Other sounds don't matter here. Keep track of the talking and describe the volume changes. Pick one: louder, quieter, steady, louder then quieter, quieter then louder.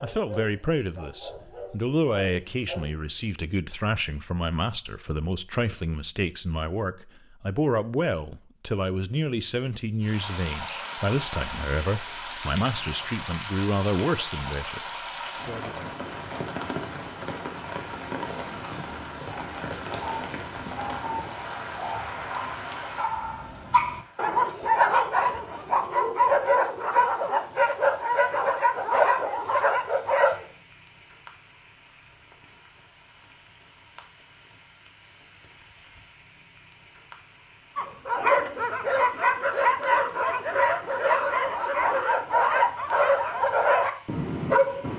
steady.